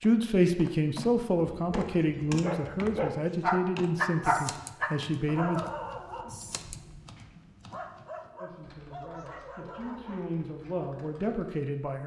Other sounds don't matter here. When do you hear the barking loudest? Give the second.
4 s.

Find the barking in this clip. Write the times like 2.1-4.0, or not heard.
1.6-10.9.